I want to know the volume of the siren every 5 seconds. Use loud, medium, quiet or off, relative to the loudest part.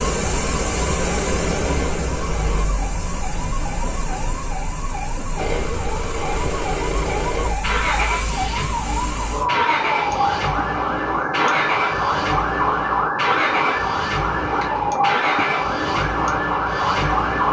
medium, medium, loud, loud.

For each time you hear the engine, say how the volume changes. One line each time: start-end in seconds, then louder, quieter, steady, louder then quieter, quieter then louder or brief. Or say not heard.
0.0-2.6 brief
5.3-17.4 steady.